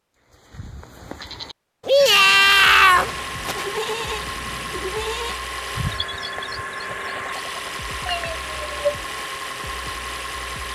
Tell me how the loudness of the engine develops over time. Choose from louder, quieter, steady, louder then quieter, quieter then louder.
steady.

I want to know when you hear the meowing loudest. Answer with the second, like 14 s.
3 s.